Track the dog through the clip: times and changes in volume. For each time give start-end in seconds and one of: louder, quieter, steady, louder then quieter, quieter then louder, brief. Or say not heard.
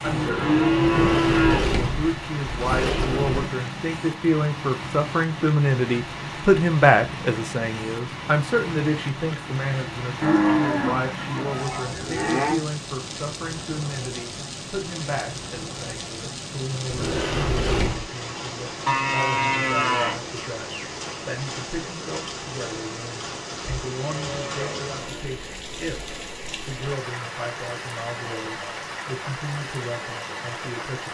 not heard.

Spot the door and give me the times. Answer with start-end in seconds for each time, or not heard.
0.8-3.5, 16.9-18.1.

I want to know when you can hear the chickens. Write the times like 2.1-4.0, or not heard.
not heard.